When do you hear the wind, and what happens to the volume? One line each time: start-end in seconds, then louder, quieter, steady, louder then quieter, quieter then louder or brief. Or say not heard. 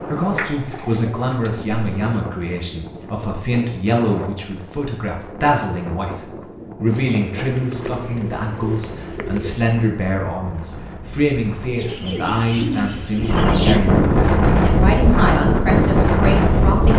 0.0-16.9 louder.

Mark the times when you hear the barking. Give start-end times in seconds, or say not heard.
not heard.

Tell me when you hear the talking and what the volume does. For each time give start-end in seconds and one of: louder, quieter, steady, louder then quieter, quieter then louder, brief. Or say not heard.
0.0-16.9 steady.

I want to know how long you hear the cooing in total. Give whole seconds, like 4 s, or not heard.
7 s.